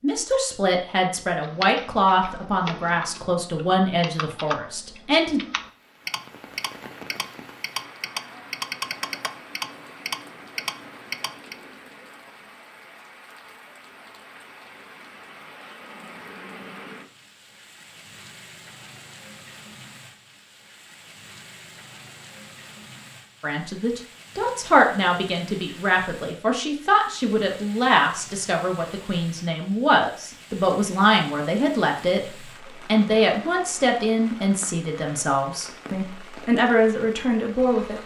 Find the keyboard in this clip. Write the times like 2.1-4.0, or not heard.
1.4-11.6.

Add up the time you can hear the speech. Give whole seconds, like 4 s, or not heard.
20 s.